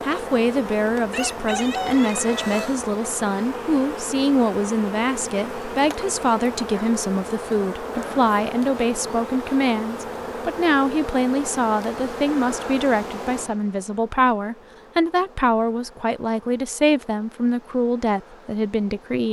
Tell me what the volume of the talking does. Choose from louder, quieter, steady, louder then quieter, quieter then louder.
steady.